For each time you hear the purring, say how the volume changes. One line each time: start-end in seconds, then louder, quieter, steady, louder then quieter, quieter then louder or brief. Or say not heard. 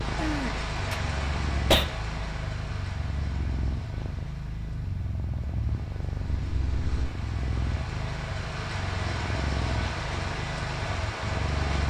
0.0-11.8 steady.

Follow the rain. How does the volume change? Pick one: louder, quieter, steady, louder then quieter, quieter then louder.
quieter then louder.